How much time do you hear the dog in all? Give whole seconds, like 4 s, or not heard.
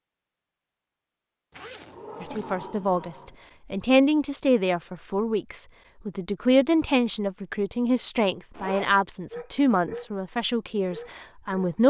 2 s.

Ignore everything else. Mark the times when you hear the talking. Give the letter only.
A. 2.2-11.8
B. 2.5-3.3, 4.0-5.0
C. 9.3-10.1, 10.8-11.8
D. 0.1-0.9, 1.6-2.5
A.